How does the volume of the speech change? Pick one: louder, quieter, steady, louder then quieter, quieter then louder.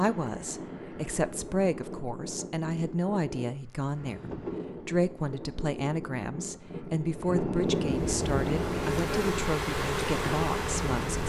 steady.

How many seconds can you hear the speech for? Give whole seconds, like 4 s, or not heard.
11 s.